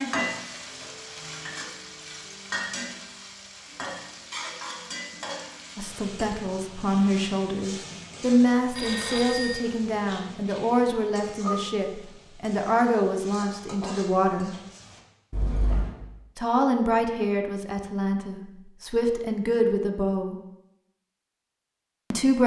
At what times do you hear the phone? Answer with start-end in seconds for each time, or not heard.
8.8-9.6, 15.3-15.9.